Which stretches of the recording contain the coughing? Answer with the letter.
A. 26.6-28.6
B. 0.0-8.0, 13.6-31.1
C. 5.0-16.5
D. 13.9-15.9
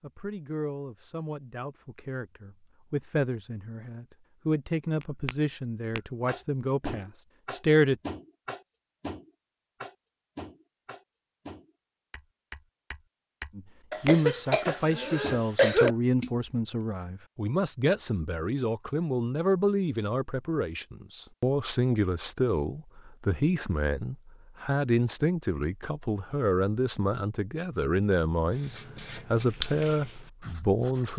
D.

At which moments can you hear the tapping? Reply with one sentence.
The tapping can be heard from 5.0 to 16.5 s.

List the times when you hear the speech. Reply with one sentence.
The speech can be heard from 0.0 to 8.0 s and from 13.6 to 31.1 s.